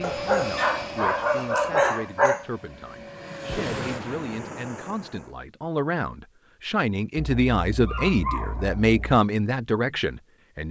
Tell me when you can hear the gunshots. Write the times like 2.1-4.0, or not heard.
3.5-4.7.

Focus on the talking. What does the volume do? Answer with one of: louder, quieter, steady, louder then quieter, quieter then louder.
louder.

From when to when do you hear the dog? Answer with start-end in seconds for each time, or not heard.
0.0-2.5, 7.2-9.2.